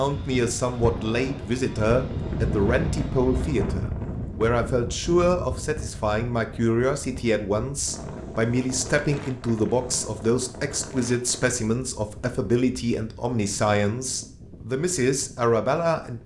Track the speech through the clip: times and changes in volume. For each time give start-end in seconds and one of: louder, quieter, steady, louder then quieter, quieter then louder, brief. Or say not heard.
0.0-16.2 steady.